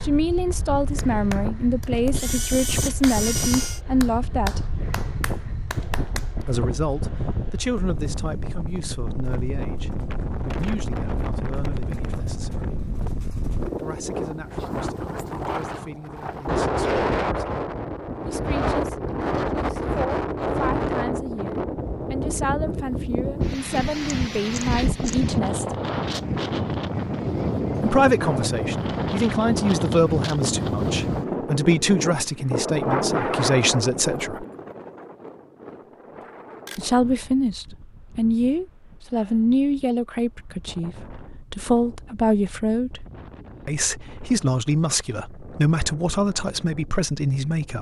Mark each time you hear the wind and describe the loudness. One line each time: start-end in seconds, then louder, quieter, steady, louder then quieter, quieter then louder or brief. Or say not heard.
0.0-47.7 louder then quieter.